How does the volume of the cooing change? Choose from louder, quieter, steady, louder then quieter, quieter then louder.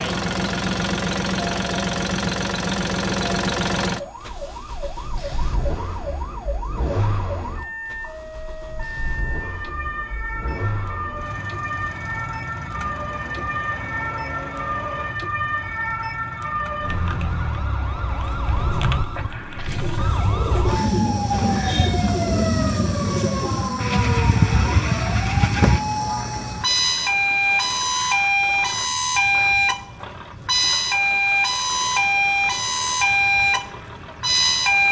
steady.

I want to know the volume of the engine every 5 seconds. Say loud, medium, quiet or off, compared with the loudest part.
loud, medium, medium, quiet, quiet, quiet, quiet.